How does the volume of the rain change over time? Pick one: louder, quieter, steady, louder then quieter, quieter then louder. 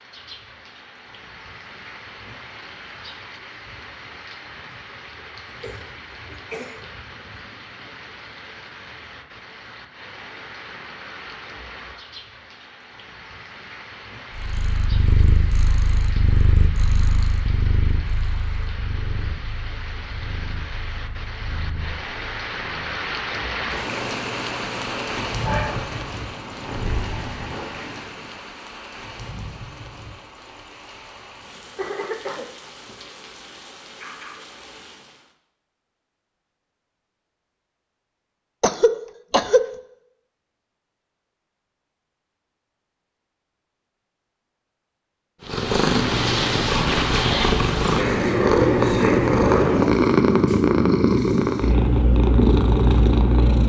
louder then quieter.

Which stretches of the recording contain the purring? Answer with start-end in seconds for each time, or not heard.
14.3-28.4, 45.4-53.6.